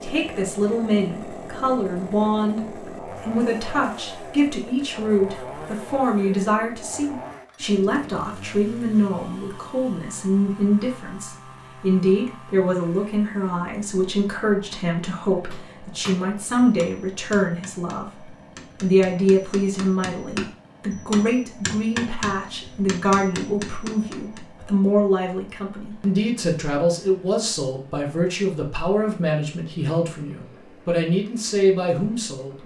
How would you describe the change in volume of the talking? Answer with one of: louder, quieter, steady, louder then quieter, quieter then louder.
steady.